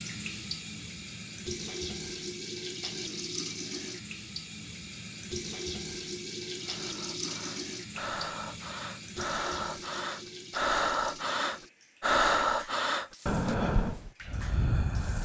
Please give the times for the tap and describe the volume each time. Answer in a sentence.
You can hear the tap from 0.0 to 15.2 s, getting quieter.